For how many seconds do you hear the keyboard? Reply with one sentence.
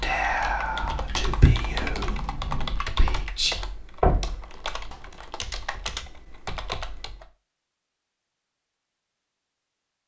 The keyboard can be heard for 7 seconds in total.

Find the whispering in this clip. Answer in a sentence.
The whispering can be heard from 0.0 to 3.6 s.